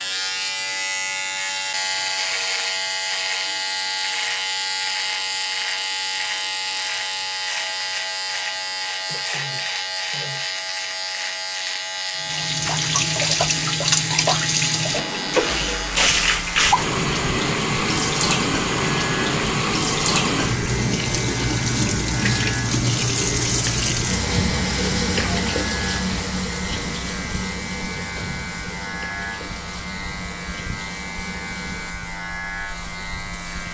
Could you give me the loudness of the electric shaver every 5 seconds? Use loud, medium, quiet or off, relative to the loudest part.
loud, loud, loud, medium, medium, medium, medium.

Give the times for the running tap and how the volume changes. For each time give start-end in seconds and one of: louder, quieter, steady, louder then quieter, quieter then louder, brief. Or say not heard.
12.2-33.6 quieter.